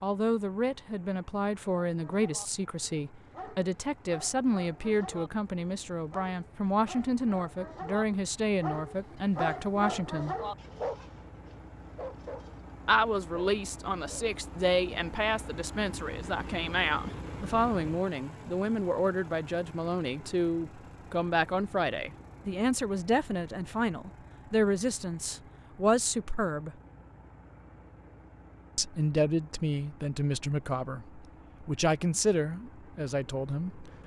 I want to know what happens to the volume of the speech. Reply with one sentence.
The loudness of the speech stays about the same.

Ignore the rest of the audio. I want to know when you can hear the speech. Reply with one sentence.
You can hear the speech from 0.0 to 10.3 s, from 12.8 to 26.8 s and from 28.8 to 33.9 s.